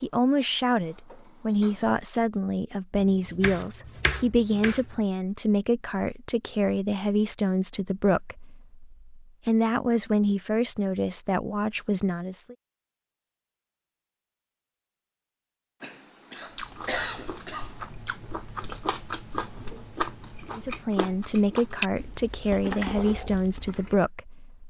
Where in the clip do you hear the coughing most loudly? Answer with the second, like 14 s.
17 s.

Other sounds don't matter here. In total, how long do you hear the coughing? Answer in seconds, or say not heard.
2 s.